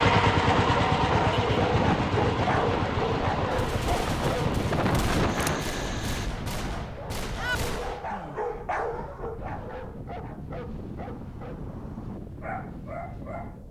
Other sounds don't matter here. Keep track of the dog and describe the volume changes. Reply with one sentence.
The loudness of the dog goes down.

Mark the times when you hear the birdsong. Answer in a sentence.
The birdsong can't be heard in this clip.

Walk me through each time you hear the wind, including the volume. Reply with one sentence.
You can hear the wind from 0.0 to 13.6 s, getting quieter.